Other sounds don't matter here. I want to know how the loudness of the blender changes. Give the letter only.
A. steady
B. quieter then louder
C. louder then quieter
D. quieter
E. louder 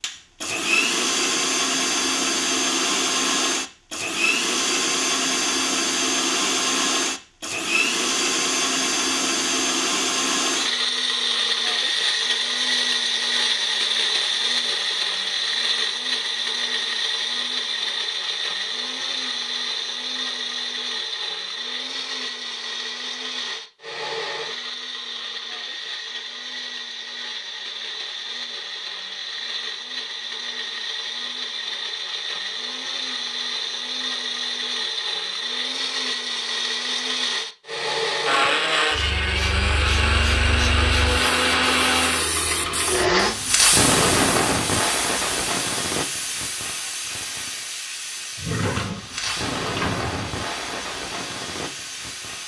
B.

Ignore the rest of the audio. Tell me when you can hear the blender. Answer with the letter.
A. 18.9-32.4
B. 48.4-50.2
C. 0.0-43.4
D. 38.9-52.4
C.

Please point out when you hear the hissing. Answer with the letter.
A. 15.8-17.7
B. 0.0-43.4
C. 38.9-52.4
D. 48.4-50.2
C.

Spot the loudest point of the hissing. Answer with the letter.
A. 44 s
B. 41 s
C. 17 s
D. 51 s
A.